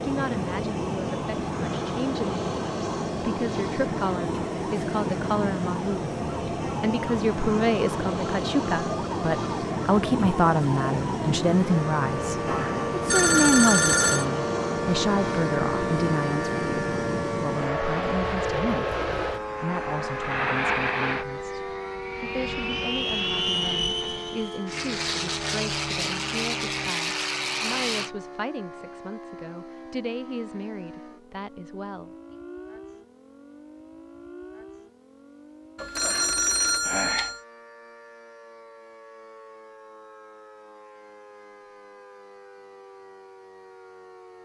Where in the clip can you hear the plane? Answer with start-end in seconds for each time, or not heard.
0.0-28.1.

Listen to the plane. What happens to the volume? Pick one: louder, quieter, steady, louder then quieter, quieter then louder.
steady.